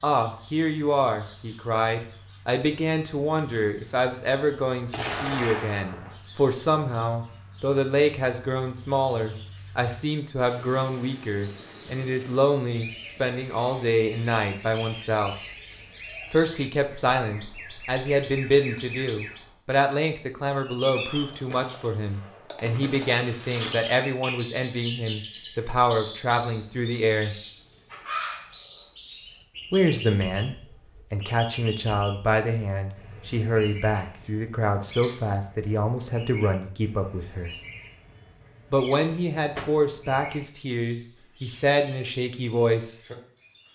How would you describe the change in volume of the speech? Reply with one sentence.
The volume of the speech stays about the same.